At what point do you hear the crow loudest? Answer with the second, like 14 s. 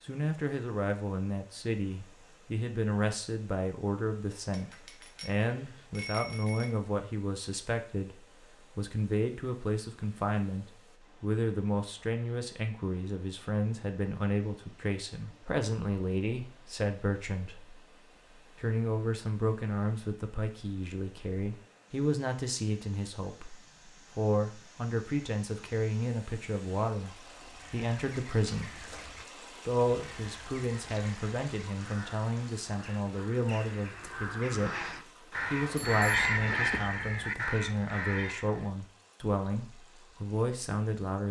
36 s.